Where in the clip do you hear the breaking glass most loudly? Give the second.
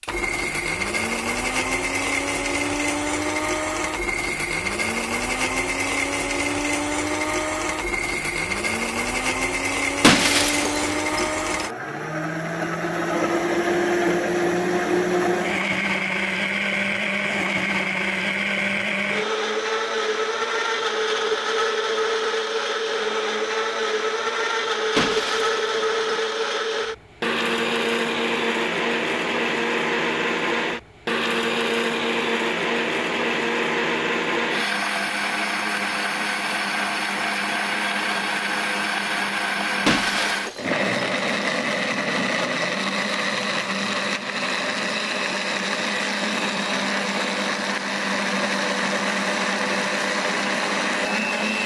10 s.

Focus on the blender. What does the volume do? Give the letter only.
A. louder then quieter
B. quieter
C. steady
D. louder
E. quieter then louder
C.